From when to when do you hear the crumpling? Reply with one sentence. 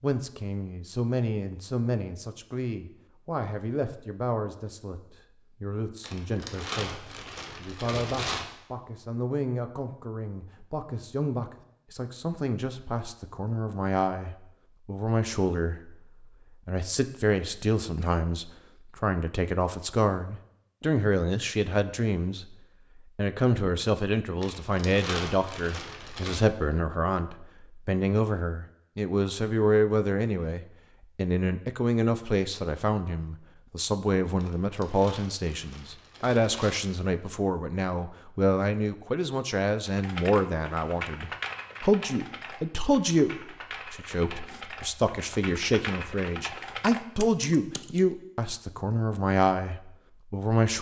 You can hear the crumpling from 6.0 to 8.4 s, from 24.4 to 26.4 s and from 34.4 to 36.8 s.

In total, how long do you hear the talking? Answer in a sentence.
You can hear the talking for 50 seconds altogether.